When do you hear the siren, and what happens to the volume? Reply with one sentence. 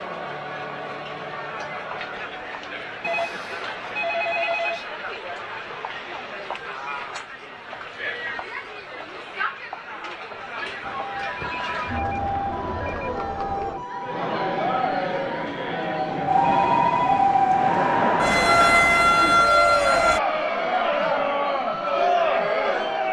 The siren can be heard from 10.8 to 20.2 s, getting louder.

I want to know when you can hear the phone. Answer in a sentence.
You can hear the phone from 3.0 to 4.9 s, from 11.2 to 13.2 s and from 16.5 to 17.3 s.